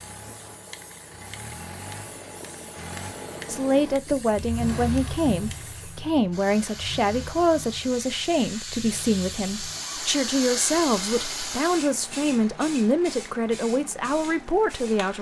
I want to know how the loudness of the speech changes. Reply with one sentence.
The loudness of the speech stays about the same.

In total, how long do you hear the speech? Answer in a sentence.
You can hear the speech for 12 seconds altogether.